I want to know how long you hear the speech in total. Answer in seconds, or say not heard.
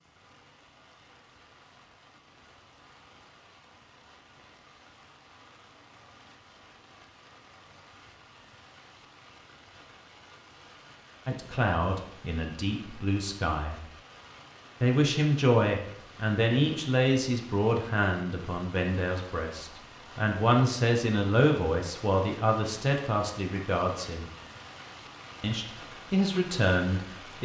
14 s.